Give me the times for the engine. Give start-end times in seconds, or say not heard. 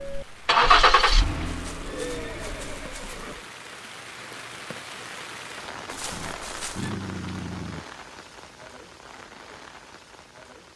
0.0-3.3.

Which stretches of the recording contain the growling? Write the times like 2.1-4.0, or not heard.
1.6-3.4, 6.1-7.8.